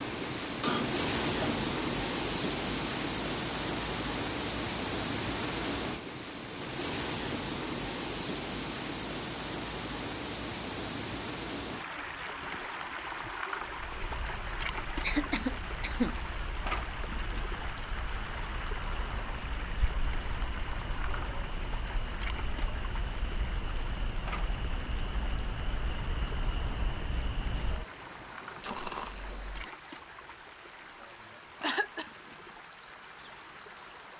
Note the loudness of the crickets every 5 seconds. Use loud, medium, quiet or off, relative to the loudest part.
off, off, quiet, quiet, quiet, medium, loud.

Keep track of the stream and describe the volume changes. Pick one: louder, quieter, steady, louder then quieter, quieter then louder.
quieter.